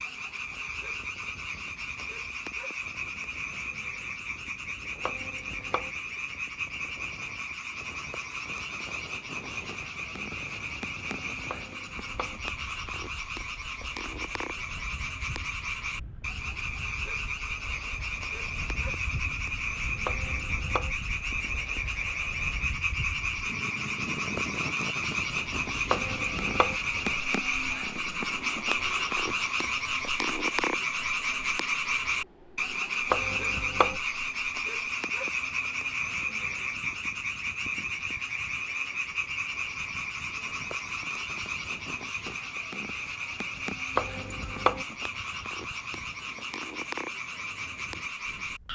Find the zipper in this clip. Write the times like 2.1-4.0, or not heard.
not heard.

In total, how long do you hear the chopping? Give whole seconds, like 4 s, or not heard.
5 s.